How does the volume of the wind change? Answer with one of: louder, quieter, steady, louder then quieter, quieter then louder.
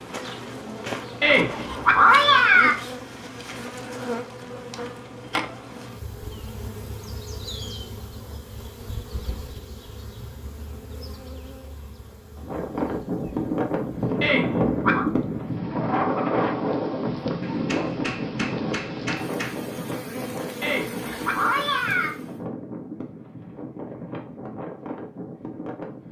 quieter.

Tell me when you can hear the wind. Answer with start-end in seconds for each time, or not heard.
12.3-26.0.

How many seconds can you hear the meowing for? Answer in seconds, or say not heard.
4 s.